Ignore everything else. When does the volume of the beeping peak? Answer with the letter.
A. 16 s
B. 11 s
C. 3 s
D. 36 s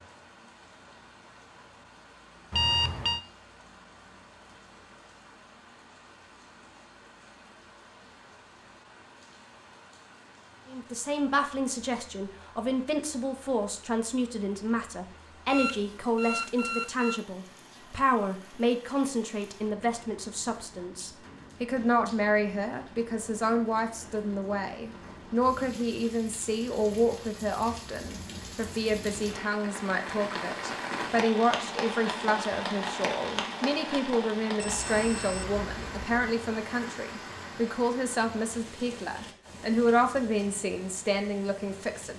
C.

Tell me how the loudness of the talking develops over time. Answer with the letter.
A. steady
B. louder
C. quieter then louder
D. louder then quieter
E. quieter
A.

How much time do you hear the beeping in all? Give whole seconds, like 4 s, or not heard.
4 s.